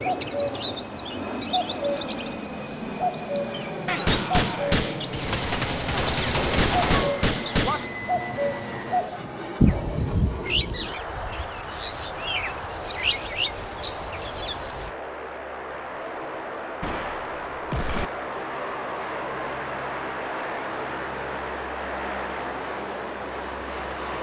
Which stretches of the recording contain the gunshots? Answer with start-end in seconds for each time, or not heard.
3.9-7.8, 16.8-18.1.